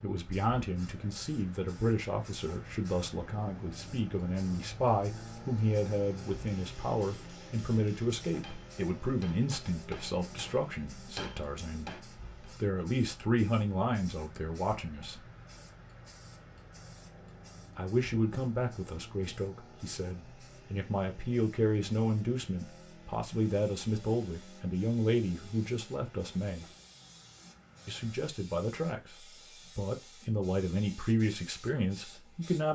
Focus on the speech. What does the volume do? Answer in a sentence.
The loudness of the speech stays about the same.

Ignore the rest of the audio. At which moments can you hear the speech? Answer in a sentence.
You can hear the speech from 0.0 to 15.2 s, from 17.8 to 26.6 s and from 27.9 to 32.6 s.